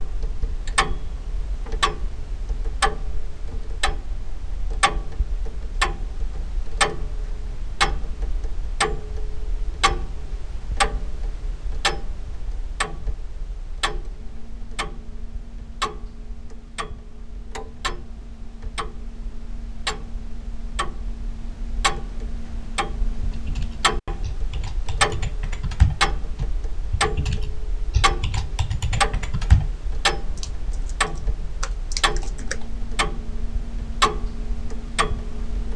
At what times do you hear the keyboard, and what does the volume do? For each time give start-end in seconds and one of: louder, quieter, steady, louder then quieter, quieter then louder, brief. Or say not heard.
23.2-32.6 louder then quieter.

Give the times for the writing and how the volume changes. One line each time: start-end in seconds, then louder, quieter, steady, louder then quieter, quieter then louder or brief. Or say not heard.
not heard.